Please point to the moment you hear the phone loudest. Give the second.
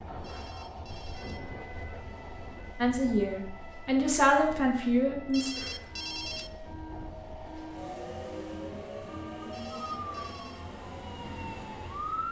6 s.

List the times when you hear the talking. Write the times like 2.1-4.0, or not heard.
2.8-5.5.